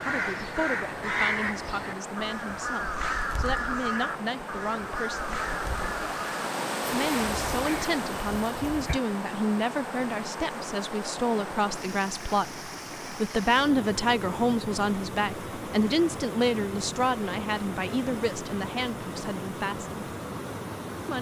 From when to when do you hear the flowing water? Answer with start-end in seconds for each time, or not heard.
0.0-21.1.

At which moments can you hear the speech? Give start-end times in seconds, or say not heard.
0.0-5.3, 6.9-19.9.